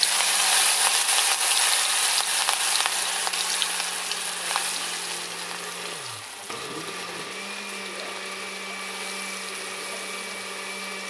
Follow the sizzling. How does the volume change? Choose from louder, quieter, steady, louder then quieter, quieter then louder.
quieter.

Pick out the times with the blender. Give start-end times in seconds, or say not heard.
0.0-11.0.